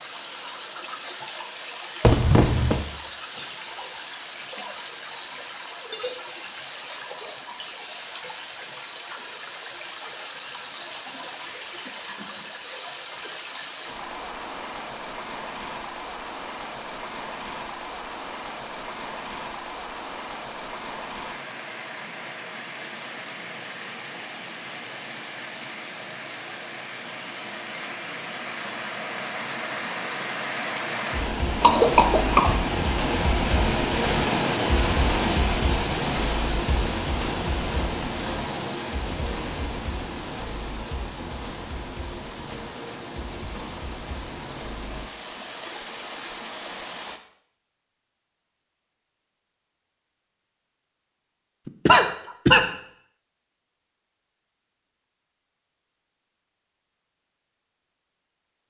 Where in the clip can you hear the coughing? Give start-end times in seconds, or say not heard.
2.0-2.9, 31.6-32.6, 51.6-52.6.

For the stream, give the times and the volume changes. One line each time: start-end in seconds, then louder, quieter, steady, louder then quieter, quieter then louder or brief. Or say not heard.
0.0-47.2 louder then quieter.